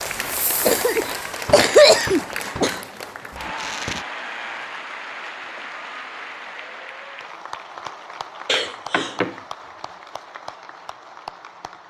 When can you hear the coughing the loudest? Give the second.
2 s.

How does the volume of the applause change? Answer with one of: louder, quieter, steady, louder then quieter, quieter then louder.
quieter.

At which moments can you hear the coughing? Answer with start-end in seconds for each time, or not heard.
0.7-2.8, 8.4-9.3.